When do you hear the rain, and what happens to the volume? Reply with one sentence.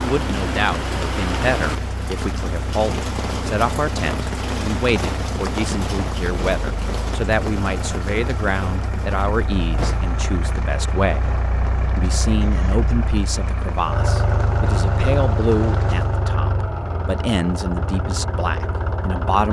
The rain can be heard from 0.0 to 16.3 s, getting quieter.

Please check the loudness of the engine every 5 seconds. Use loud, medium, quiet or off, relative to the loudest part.
medium, medium, loud, loud.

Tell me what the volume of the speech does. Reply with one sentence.
The loudness of the speech stays about the same.